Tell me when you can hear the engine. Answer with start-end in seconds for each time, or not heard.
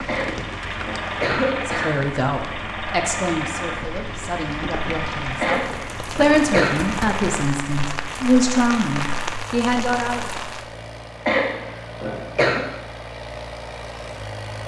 0.0-14.6.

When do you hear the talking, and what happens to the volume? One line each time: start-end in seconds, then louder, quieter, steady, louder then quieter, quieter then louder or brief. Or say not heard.
1.6-10.3 quieter then louder.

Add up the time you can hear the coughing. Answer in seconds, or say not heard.
5 s.